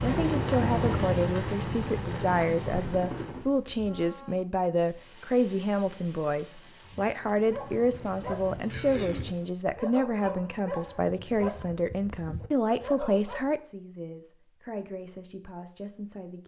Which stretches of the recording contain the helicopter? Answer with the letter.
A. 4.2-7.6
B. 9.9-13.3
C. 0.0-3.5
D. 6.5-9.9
C.